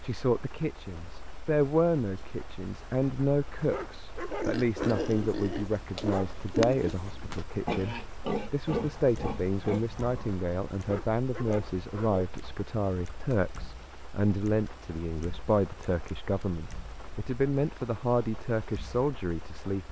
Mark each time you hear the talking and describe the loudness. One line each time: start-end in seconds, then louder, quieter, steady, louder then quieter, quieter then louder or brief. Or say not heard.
0.0-19.8 steady.